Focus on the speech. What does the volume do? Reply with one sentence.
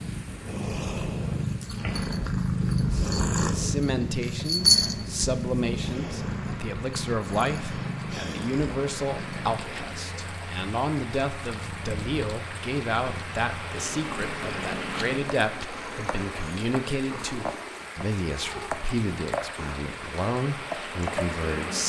The volume of the speech stays about the same.